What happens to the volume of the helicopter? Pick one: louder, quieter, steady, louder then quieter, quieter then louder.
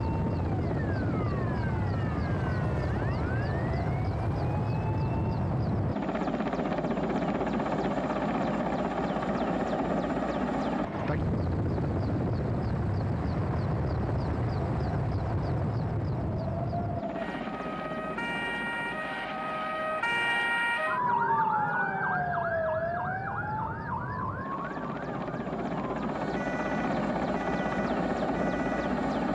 quieter then louder.